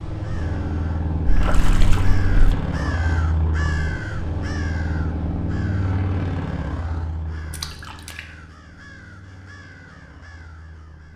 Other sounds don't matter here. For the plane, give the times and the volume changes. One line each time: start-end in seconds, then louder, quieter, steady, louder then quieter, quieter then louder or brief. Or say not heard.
0.0-11.1 quieter.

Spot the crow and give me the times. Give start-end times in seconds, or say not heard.
0.2-11.1.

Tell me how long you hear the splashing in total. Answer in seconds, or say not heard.
2 s.